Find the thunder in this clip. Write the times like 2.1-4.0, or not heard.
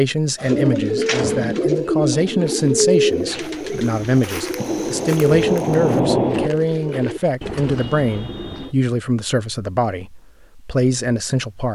4.5-6.5.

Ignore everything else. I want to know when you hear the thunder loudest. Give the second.
6 s.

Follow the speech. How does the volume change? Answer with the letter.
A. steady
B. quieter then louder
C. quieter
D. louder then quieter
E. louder
A.